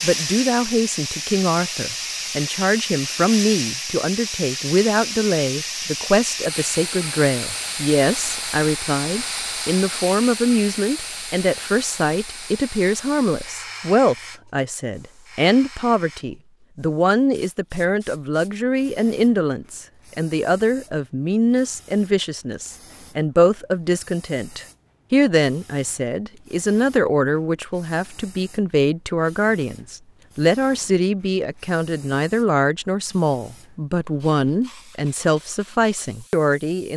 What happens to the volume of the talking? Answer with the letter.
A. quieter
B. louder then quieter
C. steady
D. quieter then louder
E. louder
C.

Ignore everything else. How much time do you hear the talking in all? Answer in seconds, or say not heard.
37 s.